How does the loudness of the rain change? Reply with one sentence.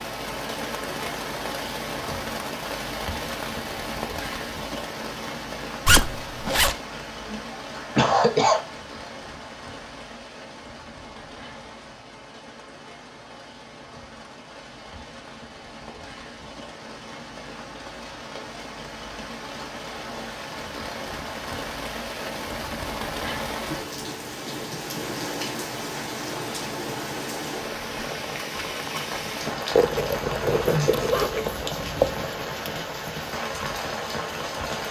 The volume of the rain goes down, then up.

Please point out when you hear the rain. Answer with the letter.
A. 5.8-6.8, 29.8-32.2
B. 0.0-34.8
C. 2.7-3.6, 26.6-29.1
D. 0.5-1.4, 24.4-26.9
B.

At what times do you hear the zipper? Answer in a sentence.
You can hear the zipper from 5.8 to 6.8 s and from 29.8 to 32.2 s.